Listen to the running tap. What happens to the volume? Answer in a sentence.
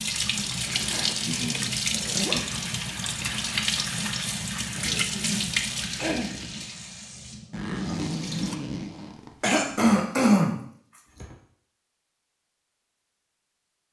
The loudness of the running tap goes down.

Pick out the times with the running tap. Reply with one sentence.
The running tap can be heard from 0.0 to 8.6 s.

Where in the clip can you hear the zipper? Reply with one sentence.
The zipper can be heard from 0.6 to 2.4 s and from 7.5 to 9.6 s.